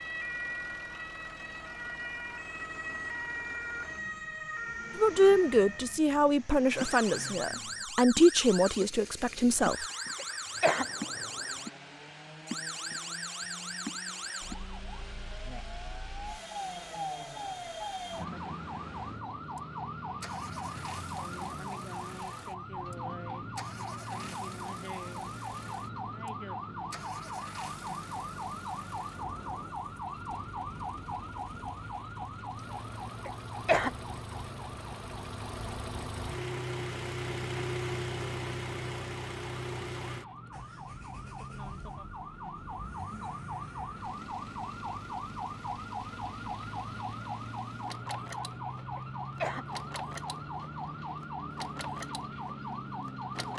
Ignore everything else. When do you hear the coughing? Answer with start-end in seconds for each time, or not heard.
10.2-10.8, 33.2-33.9, 49.0-49.6.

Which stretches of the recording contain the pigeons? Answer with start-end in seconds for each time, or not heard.
not heard.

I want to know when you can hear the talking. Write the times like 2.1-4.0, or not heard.
5.0-9.8.